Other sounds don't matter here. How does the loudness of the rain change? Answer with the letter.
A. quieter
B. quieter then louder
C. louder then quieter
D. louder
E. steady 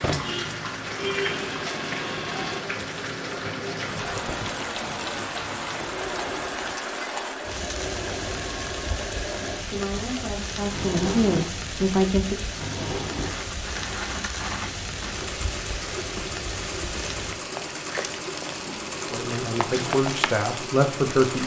E.